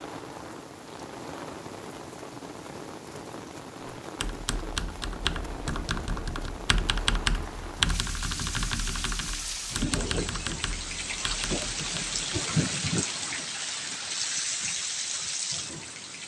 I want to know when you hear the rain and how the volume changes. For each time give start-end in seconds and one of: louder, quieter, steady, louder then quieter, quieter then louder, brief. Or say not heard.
0.0-16.2 louder.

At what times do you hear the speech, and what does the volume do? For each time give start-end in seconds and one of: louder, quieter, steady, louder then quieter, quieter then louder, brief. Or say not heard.
not heard.